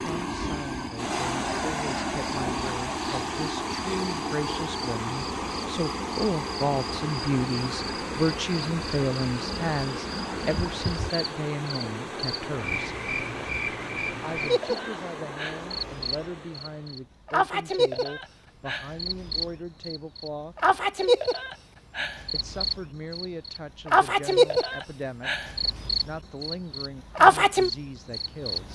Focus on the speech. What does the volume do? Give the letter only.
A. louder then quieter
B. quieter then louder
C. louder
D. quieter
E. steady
A.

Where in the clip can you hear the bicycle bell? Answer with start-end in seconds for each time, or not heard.
not heard.